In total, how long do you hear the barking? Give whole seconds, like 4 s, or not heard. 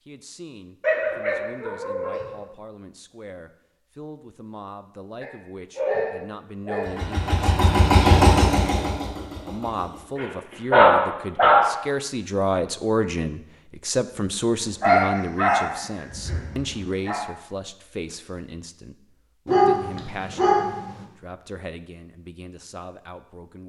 9 s.